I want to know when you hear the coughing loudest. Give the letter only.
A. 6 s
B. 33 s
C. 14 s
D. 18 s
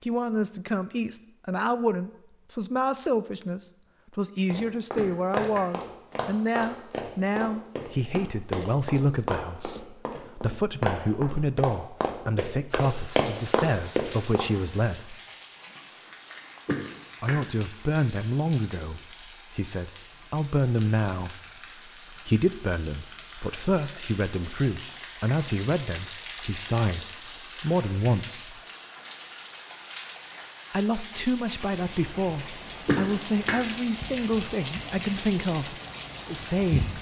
B.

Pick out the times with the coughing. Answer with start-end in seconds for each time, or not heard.
5.0-5.7, 16.6-17.4, 32.9-33.6.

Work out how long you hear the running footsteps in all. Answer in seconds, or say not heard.
10 s.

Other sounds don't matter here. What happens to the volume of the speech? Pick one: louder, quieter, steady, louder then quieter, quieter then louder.
steady.